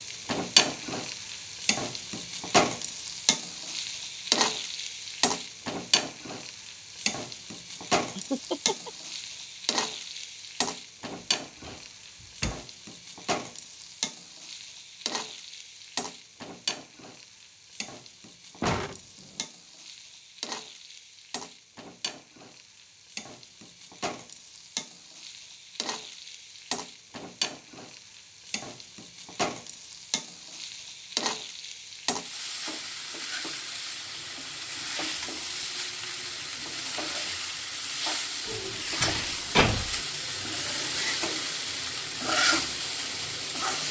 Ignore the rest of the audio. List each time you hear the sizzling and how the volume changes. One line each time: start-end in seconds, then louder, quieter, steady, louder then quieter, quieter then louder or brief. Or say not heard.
0.0-43.8 quieter then louder.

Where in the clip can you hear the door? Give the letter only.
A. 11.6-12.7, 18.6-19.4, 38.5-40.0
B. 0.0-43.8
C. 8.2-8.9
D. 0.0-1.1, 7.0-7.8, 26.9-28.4
A.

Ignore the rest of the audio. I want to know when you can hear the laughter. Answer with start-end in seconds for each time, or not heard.
8.2-8.9.